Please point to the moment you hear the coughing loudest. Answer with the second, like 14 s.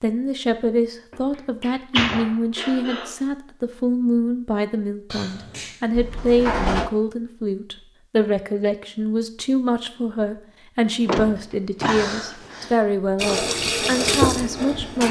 12 s.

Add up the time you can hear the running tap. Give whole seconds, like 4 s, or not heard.
2 s.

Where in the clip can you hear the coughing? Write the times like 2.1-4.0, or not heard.
2.5-3.2, 5.1-5.8, 11.8-12.8.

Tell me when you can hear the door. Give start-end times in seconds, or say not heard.
1.1-2.7, 5.9-6.9, 10.8-12.7.